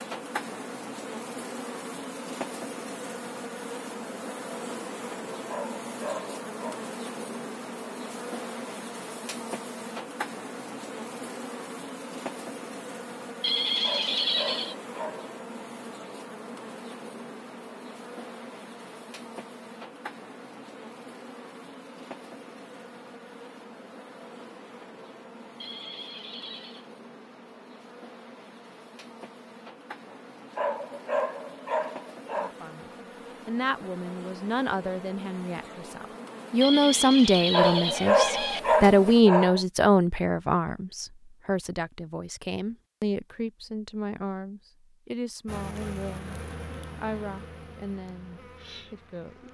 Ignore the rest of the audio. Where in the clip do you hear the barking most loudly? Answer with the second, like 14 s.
38 s.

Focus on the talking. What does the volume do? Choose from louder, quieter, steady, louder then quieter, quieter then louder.
louder then quieter.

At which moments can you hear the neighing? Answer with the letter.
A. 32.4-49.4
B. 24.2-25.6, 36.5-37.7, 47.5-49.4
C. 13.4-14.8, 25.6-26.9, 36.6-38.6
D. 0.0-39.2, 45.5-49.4
C.